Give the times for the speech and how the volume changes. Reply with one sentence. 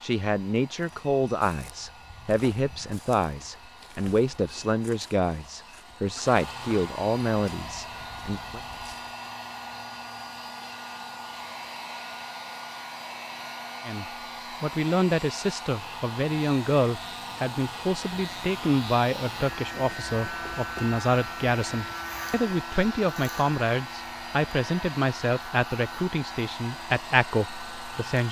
You can hear the speech from 0.0 to 8.6 s, at a steady volume; and from 13.8 to 28.2 s, at a steady volume.